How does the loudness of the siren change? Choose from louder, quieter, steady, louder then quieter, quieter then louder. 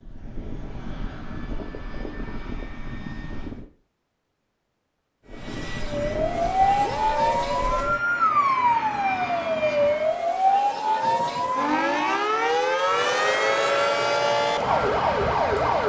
steady.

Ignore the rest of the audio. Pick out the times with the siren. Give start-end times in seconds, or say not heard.
5.8-15.8.